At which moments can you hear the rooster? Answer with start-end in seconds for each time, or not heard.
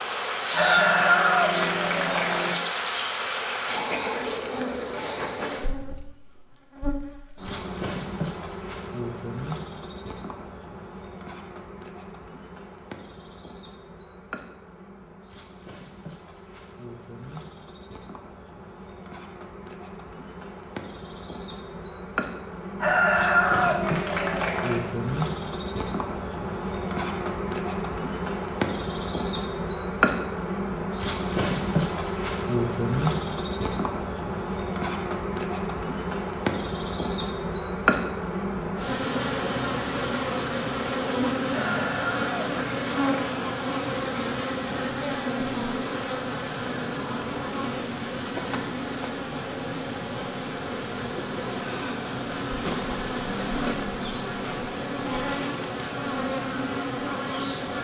0.5-2.5, 22.8-24.8, 41.5-43.5.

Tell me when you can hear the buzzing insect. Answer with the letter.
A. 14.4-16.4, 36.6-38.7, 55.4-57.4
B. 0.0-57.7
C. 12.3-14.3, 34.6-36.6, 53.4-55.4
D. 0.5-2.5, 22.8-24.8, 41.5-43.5
B.